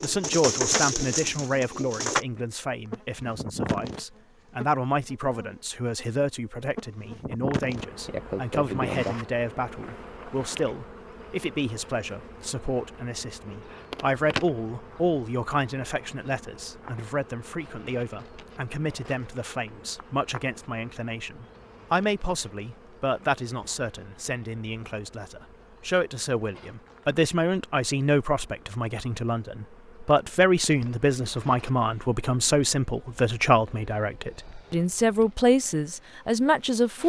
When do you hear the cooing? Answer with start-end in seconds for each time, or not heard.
0.0-2.2.